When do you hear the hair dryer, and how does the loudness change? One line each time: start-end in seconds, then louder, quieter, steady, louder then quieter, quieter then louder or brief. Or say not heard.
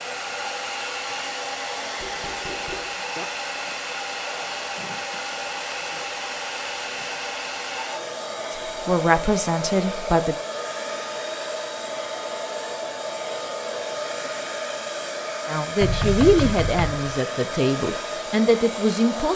0.0-19.3 steady.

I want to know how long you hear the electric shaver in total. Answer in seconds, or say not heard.
not heard.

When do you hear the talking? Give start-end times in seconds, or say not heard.
8.7-10.3, 15.4-19.3.